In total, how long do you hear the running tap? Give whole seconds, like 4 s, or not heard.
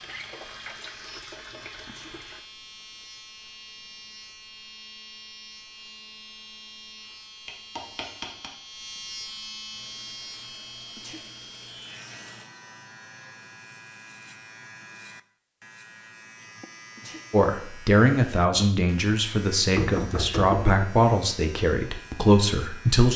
5 s.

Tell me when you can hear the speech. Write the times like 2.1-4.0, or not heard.
17.3-23.1.